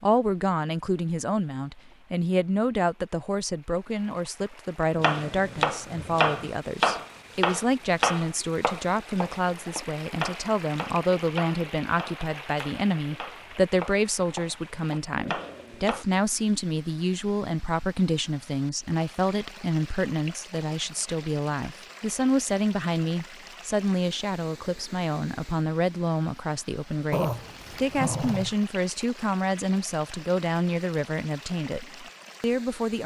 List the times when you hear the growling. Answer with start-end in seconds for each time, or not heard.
5.1-6.3, 15.2-16.0, 27.1-28.6.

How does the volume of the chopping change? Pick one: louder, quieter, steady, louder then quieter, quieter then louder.
quieter.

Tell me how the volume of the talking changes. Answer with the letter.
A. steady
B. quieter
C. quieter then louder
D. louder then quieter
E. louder
A.